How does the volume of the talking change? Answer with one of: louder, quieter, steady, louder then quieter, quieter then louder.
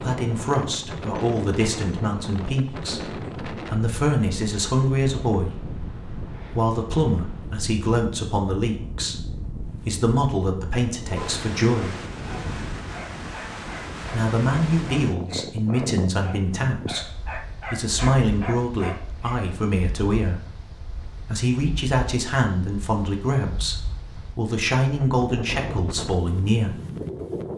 steady.